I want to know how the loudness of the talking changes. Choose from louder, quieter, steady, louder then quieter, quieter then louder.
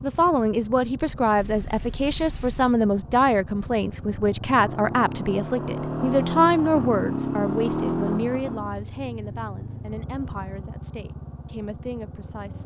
quieter.